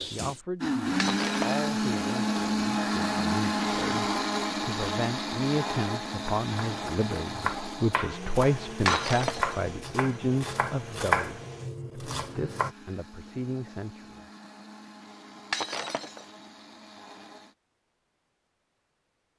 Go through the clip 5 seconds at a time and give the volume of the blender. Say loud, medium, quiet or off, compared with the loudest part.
loud, medium, quiet, quiet.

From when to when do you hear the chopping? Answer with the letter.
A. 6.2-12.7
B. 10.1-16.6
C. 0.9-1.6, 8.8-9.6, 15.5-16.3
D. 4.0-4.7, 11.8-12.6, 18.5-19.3
A.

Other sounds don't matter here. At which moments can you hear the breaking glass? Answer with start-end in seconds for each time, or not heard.
0.9-1.6, 8.8-9.6, 15.5-16.3.